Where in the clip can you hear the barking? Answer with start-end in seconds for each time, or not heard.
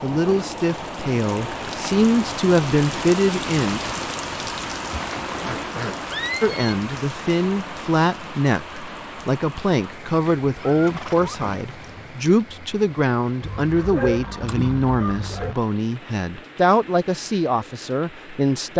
13.4-15.6.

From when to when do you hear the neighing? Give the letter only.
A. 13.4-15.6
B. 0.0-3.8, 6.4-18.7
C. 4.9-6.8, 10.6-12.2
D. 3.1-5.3
C.